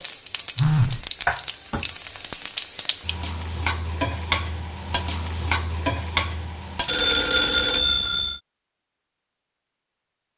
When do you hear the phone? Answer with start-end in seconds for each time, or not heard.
0.6-1.1, 6.8-8.4.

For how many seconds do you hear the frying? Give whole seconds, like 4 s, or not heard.
7 s.